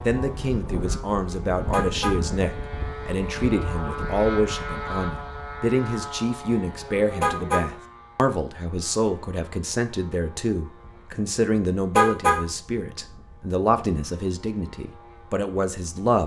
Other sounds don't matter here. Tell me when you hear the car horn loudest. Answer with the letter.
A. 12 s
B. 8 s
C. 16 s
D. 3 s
A.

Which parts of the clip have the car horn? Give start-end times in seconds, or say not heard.
1.7-2.1, 7.2-7.7, 11.9-12.4.